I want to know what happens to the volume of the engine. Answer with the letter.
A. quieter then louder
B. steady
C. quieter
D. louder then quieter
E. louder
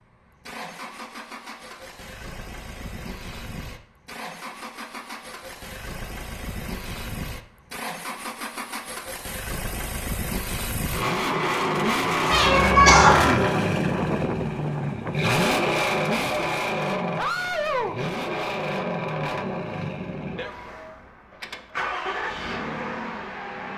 D.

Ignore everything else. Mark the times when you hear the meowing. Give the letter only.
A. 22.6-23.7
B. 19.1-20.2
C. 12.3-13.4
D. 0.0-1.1
C.